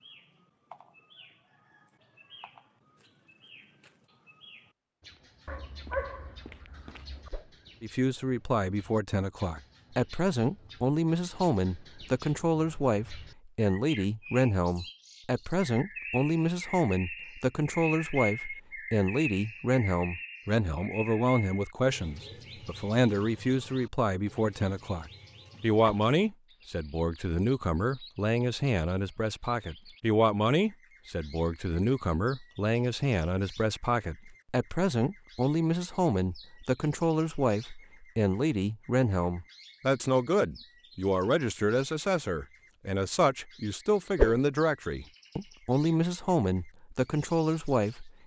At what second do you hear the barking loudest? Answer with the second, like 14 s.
6 s.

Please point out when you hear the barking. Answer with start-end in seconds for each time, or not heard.
5.5-7.3.